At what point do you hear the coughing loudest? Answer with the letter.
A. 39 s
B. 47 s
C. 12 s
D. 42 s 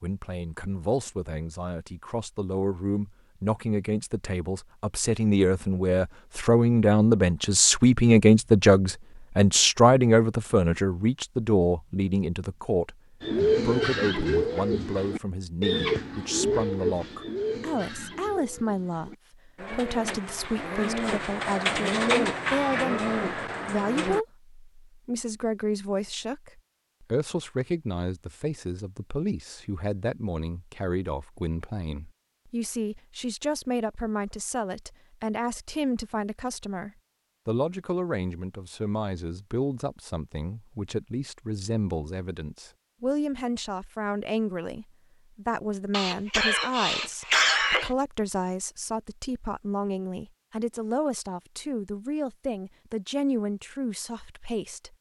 B.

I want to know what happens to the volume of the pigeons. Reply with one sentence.
The volume of the pigeons goes down, then up.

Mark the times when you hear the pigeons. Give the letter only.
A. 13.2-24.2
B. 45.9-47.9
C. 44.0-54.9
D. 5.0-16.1
A.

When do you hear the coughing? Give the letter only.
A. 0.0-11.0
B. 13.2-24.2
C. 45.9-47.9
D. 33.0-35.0
C.